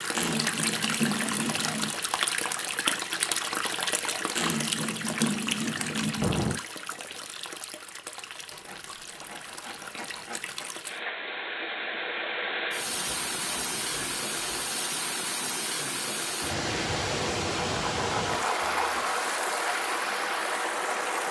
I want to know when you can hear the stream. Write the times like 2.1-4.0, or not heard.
0.0-21.2.